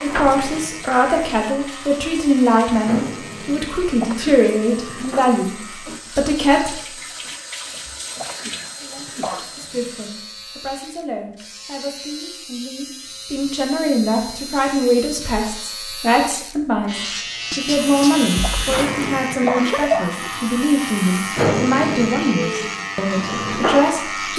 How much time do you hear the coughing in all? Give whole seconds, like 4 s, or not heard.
4 s.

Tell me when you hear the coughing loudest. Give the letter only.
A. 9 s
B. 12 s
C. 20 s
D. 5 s
C.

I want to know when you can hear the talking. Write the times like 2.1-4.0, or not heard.
0.0-6.8, 8.8-24.3.